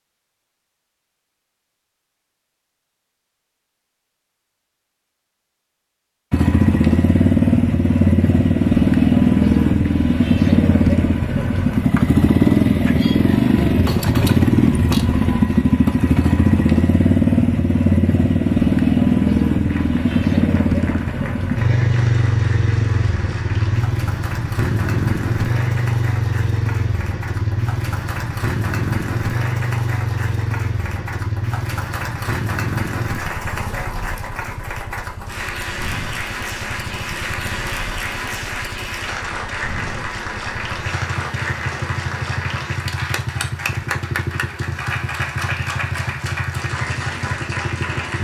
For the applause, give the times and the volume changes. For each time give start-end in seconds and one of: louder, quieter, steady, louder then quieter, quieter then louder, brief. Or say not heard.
19.6-48.1 louder.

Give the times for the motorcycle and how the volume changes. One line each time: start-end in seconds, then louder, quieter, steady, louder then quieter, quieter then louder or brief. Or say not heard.
6.3-48.1 quieter.